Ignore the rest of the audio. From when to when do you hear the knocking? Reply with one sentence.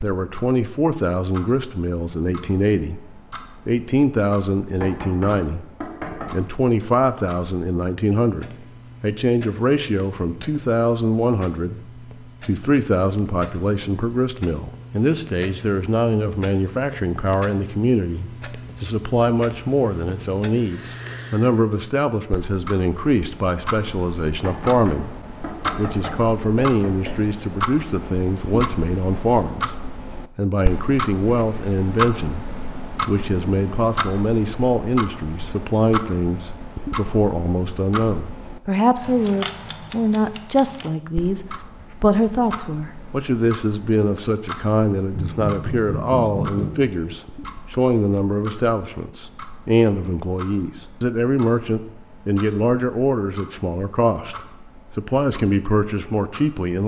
The knocking can be heard from 4.8 to 6.3 s, from 24.4 to 27.1 s and from 45.1 to 46.8 s.